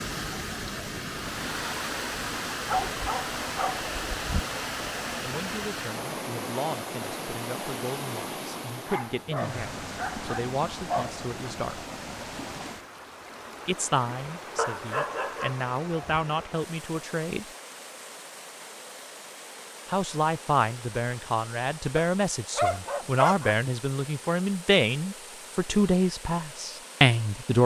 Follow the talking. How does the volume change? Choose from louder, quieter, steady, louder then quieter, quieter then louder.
louder.